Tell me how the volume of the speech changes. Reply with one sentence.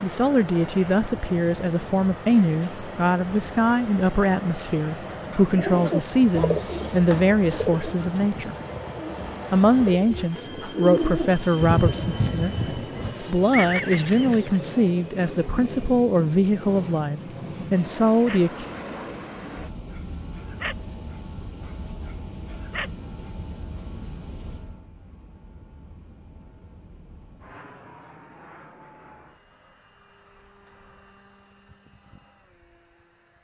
The volume of the speech stays about the same.